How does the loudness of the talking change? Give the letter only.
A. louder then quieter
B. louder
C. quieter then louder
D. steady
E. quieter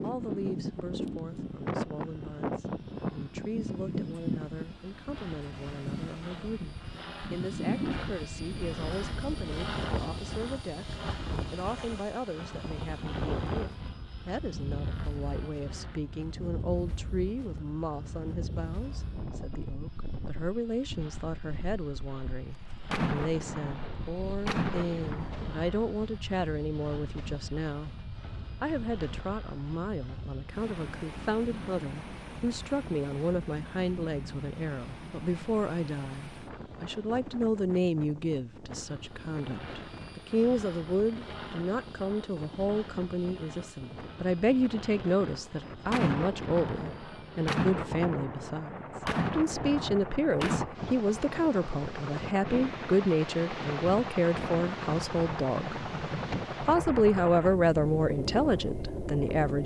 B.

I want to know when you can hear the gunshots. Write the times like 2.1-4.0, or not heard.
22.9-25.7, 45.9-50.6.